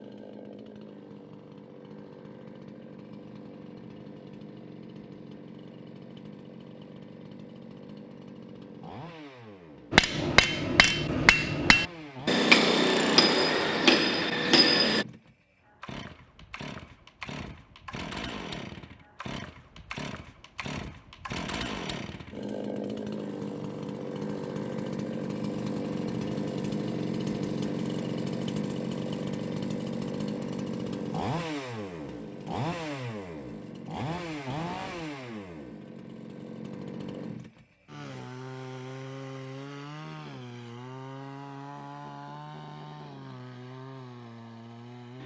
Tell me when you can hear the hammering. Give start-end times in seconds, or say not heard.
9.9-15.1.